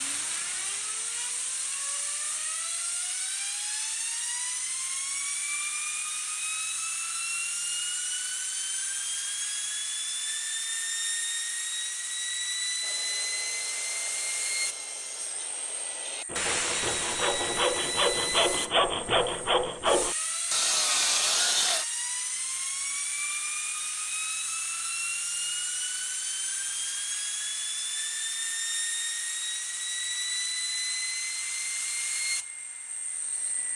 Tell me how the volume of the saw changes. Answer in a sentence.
The loudness of the saw goes up.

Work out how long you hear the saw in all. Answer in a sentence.
The saw can be heard for 9 seconds in total.